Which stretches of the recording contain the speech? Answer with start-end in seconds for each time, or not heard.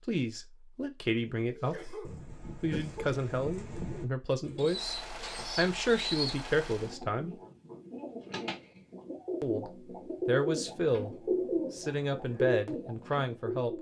0.1-7.3, 9.4-13.7.